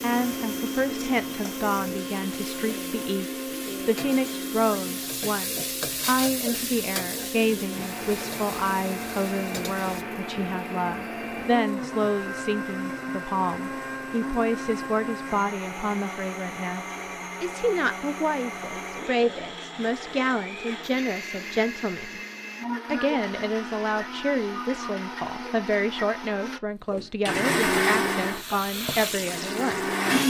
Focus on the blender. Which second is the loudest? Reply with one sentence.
The volume of the blender peaks at 28 seconds.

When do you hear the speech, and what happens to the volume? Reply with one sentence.
The speech can be heard from 0.0 to 22.2 s, at a steady volume; and from 22.9 to 30.2 s, at a steady volume.